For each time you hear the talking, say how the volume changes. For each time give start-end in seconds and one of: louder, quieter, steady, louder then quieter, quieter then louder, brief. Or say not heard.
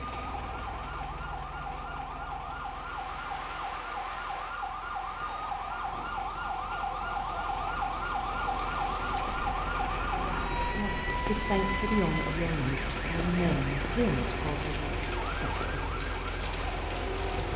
10.2-16.1 quieter.